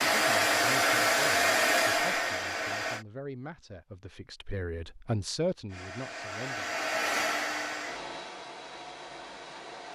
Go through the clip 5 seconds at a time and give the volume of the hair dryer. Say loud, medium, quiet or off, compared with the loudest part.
loud, medium.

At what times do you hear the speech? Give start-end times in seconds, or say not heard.
0.0-6.7.